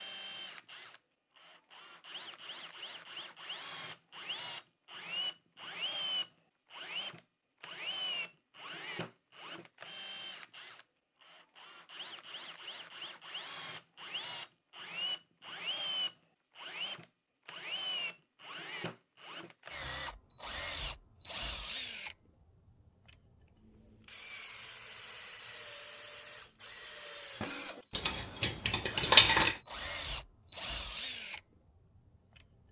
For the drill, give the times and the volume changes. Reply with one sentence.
You can hear the drill from 0.0 to 32.6 s, at a steady volume.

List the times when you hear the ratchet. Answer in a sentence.
You can hear the ratchet from 27.9 to 29.6 s.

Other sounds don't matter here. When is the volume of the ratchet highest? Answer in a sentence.
The loudest moment of the ratchet is at 29 seconds.